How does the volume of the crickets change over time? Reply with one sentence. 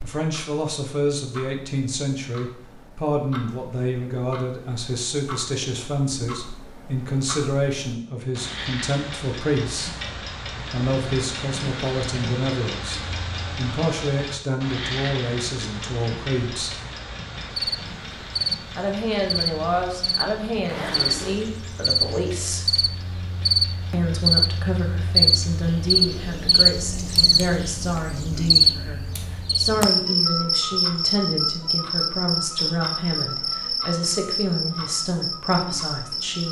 The volume of the crickets goes up, then down.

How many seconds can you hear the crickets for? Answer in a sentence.
The crickets can be heard for 19 seconds in total.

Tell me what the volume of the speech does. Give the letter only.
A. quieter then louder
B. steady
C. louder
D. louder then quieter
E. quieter
B.